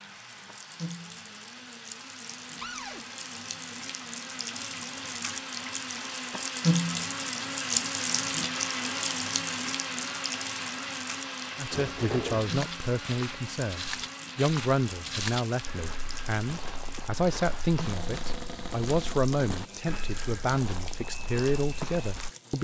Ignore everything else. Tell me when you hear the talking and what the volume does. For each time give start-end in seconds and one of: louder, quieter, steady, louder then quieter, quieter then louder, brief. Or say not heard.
11.6-22.5 steady.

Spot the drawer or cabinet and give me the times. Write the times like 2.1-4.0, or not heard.
2.6-3.0, 11.7-12.5, 17.8-19.6.